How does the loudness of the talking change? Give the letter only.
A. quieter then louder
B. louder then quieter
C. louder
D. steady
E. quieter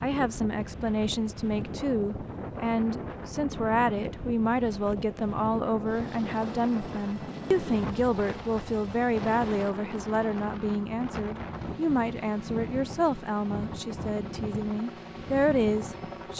D.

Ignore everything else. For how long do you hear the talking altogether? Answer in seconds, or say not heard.
16 s.